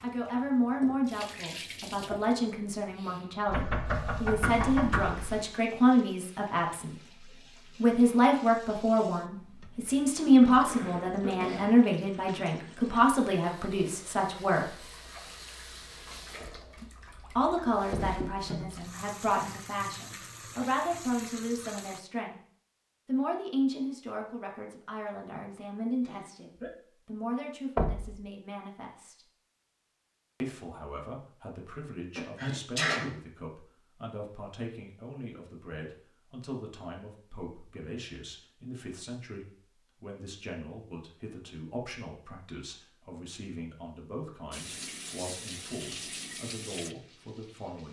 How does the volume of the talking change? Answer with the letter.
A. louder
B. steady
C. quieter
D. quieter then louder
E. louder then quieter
C.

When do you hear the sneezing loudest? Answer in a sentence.
The loudest moment of the sneezing is at 33 seconds.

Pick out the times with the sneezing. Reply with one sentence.
The sneezing can be heard from 10.5 to 11.8 s, from 26.0 to 26.7 s and from 32.1 to 33.1 s.